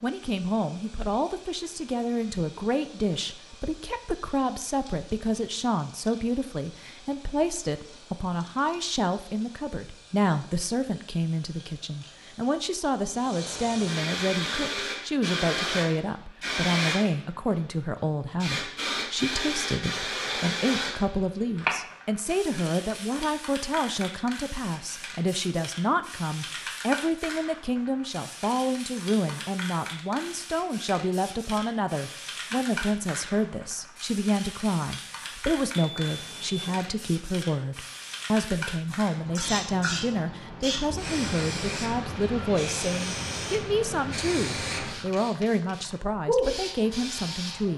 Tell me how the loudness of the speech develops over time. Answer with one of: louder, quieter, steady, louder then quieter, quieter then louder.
steady.